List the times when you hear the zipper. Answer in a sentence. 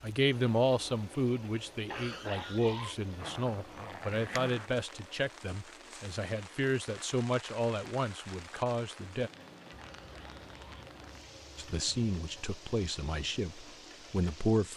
You can hear the zipper from 3.1 to 4.7 s and from 9.9 to 11.8 s.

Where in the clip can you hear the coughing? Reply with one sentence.
The coughing can be heard from 1.9 to 3.0 s and from 9.8 to 10.9 s.